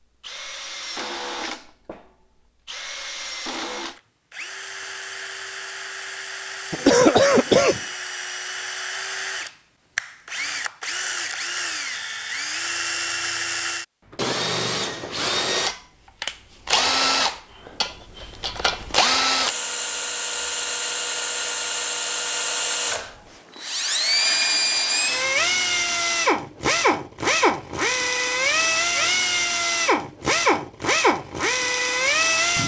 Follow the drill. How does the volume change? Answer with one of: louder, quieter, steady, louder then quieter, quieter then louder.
louder.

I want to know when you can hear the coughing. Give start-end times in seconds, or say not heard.
6.7-7.8.